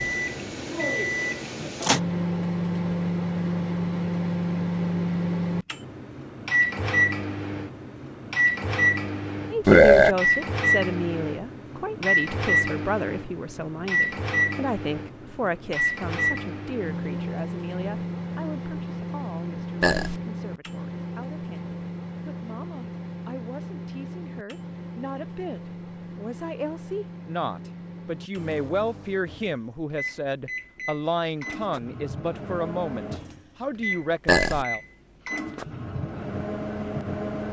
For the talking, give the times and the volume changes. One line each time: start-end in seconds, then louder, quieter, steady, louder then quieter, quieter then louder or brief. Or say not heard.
9.5-34.8 quieter then louder.